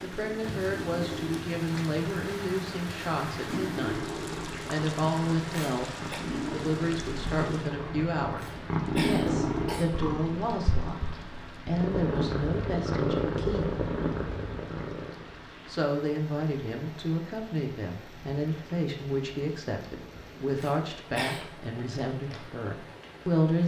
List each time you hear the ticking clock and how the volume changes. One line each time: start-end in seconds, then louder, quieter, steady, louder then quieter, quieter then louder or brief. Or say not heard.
not heard.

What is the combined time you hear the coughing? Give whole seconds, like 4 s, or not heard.
3 s.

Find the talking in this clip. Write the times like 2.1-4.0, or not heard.
0.0-13.8, 15.7-23.6.